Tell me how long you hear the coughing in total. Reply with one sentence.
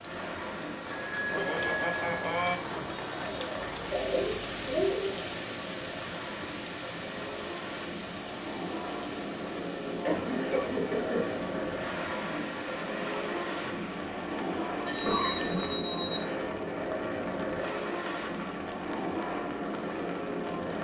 You can hear the coughing for 4 seconds altogether.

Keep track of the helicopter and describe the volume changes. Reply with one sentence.
The loudness of the helicopter goes up.